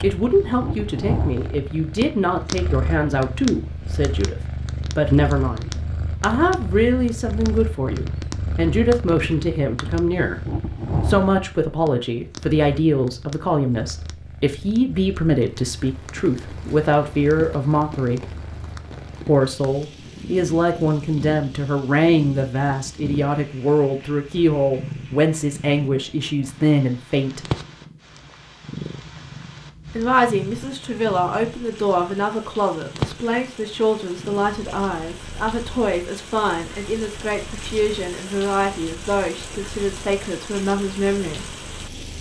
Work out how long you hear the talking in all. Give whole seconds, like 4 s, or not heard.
38 s.